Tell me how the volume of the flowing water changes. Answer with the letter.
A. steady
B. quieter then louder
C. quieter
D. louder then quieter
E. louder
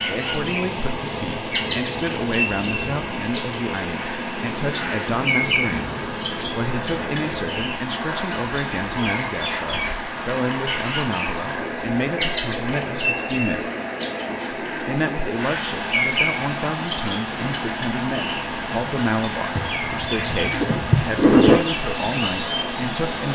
A.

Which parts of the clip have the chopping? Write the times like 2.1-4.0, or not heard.
not heard.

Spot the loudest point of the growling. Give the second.
21 s.